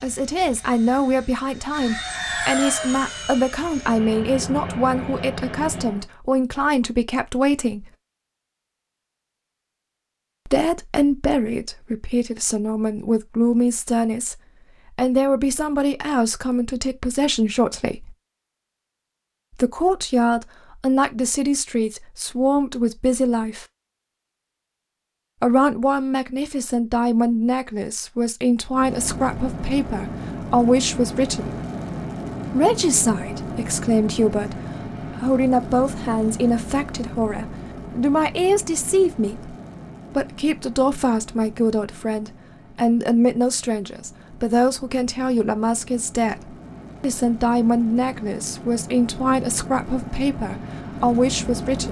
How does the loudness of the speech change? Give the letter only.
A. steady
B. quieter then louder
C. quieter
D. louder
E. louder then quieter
A.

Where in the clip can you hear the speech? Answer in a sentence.
The speech can be heard from 0.0 to 7.9 s, from 10.4 to 18.1 s, from 19.6 to 23.6 s, from 25.4 to 31.6 s, from 32.5 to 39.5 s and from 40.1 to 51.8 s.